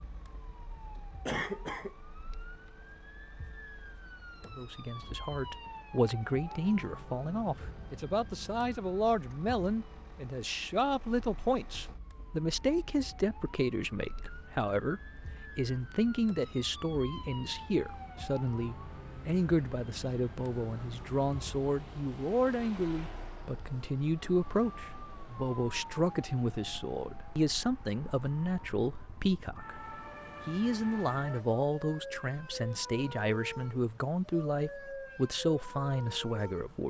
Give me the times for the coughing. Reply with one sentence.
The coughing can be heard from 1.2 to 1.9 s.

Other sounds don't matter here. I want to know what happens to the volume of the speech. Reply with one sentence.
The volume of the speech stays about the same.